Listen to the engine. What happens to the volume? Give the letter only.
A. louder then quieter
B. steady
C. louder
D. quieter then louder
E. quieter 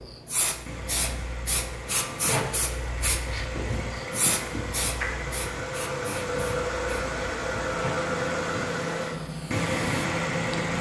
C.